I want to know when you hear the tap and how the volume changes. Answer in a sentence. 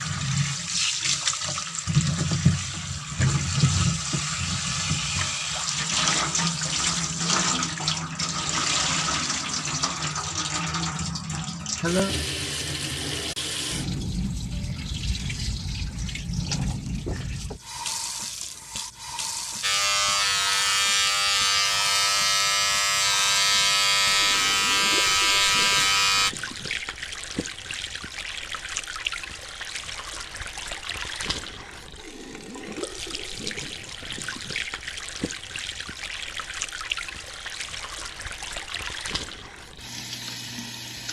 You can hear the tap from 0.0 to 41.0 s, getting quieter.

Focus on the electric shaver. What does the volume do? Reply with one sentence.
The loudness of the electric shaver stays about the same.